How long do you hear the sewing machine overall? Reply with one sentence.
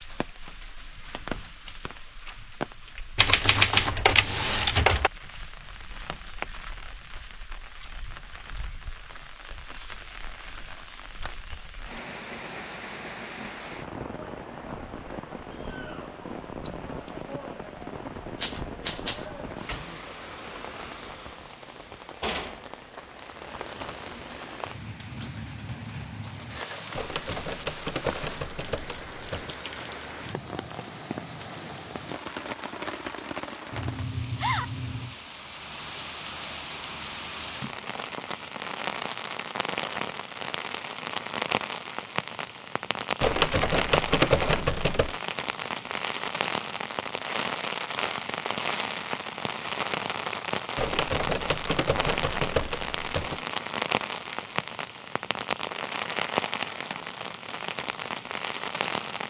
The sewing machine can't be heard in this clip.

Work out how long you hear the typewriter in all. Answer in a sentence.
The typewriter can be heard for 11 seconds in total.